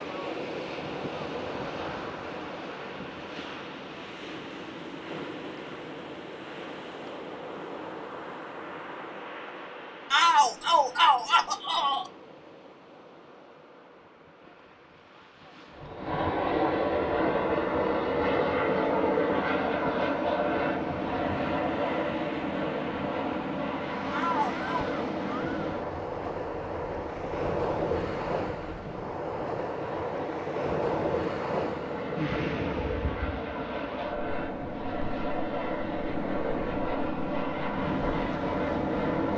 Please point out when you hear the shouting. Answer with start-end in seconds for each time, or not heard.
10.1-12.1, 24.1-24.9.